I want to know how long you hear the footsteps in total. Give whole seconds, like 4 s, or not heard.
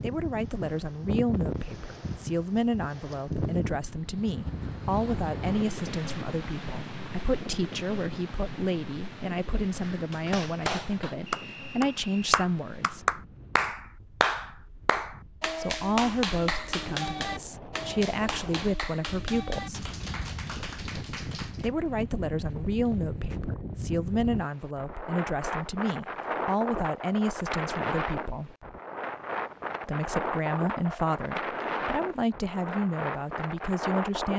not heard.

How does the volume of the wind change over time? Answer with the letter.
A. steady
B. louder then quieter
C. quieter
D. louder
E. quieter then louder
E.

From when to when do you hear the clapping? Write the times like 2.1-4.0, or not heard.
9.8-21.7.